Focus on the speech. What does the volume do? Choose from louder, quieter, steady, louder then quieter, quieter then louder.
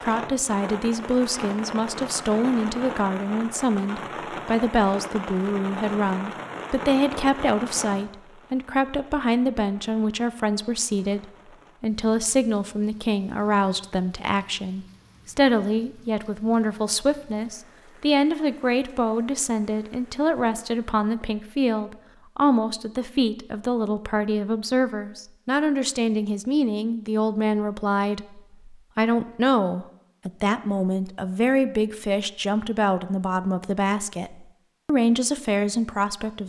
steady.